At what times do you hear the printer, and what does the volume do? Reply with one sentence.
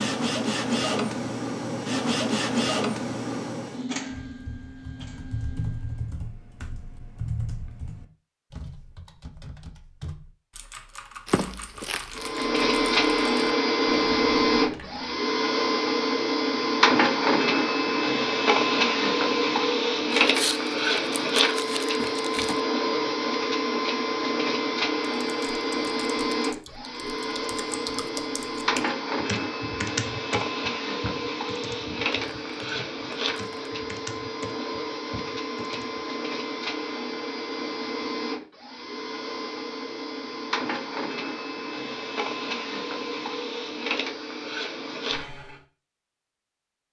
The printer can be heard from 0.0 to 6.2 s, getting quieter; and from 12.2 to 45.6 s, getting quieter.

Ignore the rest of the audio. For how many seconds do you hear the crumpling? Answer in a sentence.
The crumpling can be heard for 5 seconds in total.